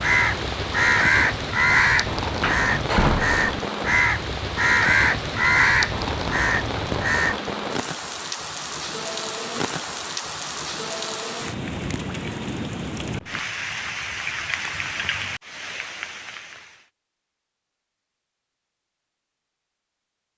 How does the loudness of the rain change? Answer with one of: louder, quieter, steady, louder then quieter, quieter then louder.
steady.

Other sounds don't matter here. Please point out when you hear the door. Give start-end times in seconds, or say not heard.
2.4-3.5.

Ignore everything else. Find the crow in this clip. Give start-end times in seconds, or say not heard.
0.0-7.4.